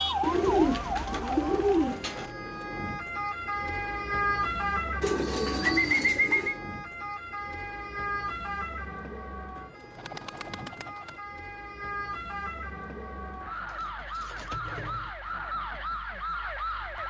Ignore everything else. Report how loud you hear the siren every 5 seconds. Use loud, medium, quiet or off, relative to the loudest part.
loud, medium, medium, loud.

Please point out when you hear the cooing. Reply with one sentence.
The cooing can be heard from 0.2 to 2.3 s, from 5.0 to 6.5 s, from 9.6 to 11.2 s and from 13.7 to 15.1 s.